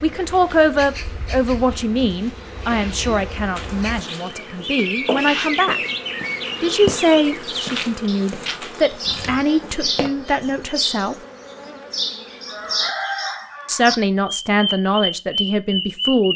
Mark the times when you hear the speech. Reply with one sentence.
You can hear the speech from 0.0 to 5.8 s, from 6.6 to 11.2 s and from 13.7 to 16.3 s.